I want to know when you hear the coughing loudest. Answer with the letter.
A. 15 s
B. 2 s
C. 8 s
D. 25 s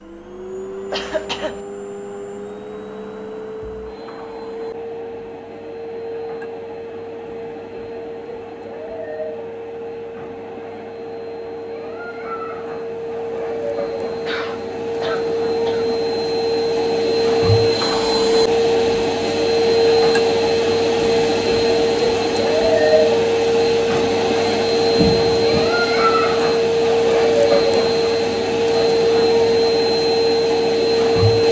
D.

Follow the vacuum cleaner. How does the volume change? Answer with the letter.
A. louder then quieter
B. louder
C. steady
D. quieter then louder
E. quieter
B.